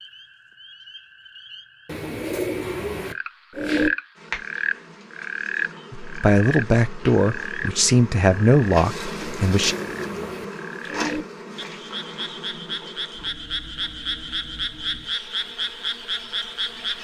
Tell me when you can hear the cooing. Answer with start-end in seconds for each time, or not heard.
1.9-3.9, 9.2-11.2.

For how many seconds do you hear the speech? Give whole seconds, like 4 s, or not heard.
4 s.